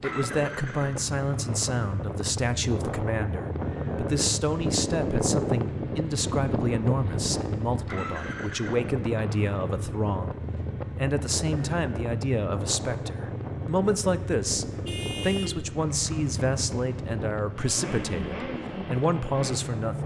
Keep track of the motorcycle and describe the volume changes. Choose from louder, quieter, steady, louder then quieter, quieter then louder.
steady.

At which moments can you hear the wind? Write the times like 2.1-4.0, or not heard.
0.0-20.0.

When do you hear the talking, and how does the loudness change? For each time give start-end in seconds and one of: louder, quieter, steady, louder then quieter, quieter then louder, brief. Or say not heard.
0.0-20.0 steady.